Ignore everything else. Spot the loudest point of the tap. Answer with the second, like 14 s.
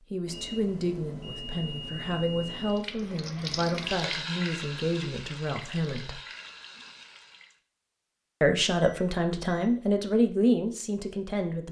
4 s.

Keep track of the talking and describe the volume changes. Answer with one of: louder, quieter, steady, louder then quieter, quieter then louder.
louder.